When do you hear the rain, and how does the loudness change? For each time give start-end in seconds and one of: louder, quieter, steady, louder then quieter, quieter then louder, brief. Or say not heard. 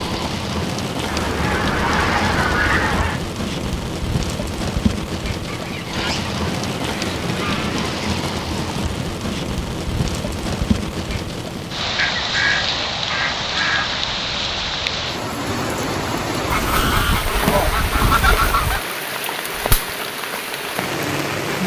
0.0-21.6 steady.